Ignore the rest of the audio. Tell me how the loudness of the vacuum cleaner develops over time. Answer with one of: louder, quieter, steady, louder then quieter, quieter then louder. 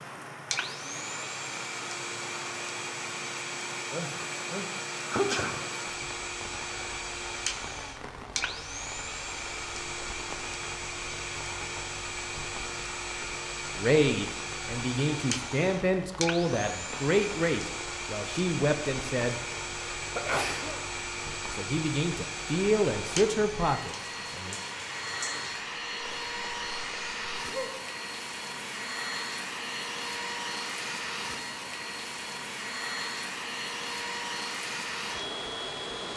steady.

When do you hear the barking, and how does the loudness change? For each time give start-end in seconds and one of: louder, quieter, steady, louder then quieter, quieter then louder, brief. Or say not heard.
not heard.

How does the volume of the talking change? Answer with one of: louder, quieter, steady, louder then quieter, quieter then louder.
steady.